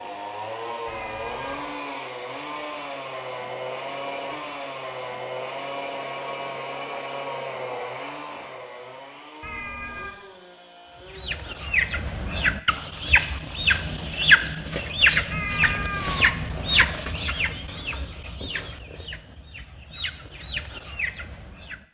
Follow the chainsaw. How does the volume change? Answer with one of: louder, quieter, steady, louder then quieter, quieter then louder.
quieter.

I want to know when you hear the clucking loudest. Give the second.
14 s.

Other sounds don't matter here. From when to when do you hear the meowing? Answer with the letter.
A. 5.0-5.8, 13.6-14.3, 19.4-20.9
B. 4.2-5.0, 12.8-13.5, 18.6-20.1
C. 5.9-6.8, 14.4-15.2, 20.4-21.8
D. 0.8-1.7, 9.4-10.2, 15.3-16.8
D.